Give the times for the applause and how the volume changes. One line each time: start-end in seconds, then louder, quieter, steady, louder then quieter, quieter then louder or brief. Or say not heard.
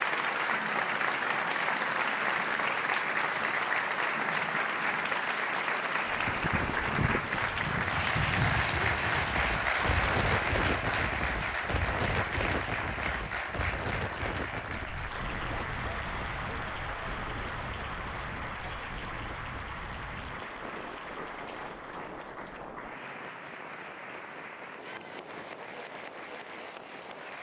0.0-27.3 quieter.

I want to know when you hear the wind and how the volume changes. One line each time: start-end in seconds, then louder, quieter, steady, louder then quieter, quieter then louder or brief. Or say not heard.
6.0-27.3 quieter.